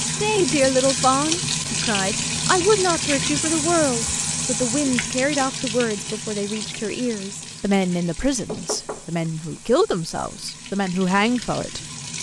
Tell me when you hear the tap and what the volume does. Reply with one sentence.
The tap can be heard from 0.0 to 12.1 s, getting quieter.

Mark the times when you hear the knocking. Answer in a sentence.
You can hear the knocking from 8.4 to 9.7 s.